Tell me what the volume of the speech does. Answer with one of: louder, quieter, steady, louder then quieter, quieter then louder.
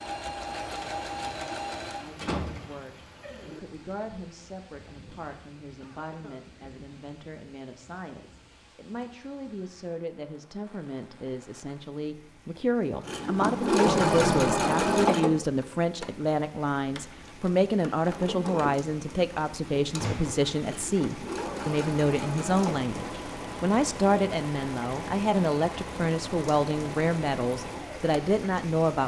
louder.